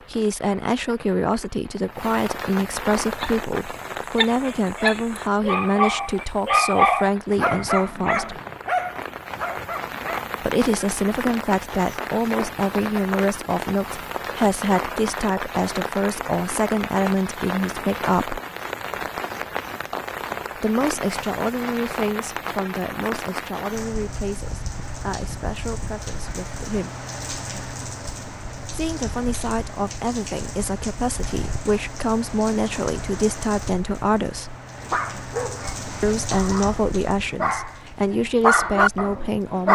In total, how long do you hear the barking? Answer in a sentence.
You can hear the barking for 12 seconds altogether.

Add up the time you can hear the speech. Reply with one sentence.
The speech can be heard for 32 seconds in total.